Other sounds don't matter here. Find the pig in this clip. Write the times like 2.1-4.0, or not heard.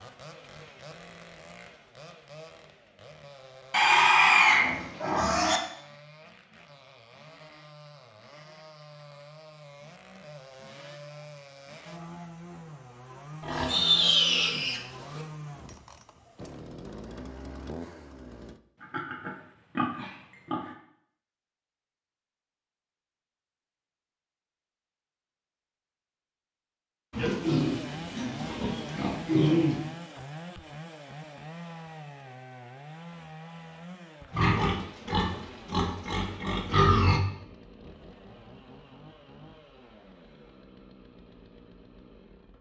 3.7-5.6, 13.4-15.2, 18.8-20.7, 27.1-29.9, 34.3-37.2.